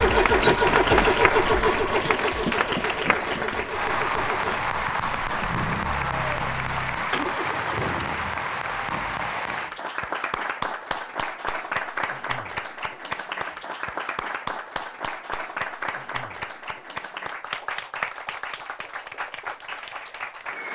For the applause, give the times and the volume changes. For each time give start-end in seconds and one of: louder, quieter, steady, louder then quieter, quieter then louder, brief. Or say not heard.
0.0-20.7 quieter.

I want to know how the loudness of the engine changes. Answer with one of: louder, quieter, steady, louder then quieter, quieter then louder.
quieter.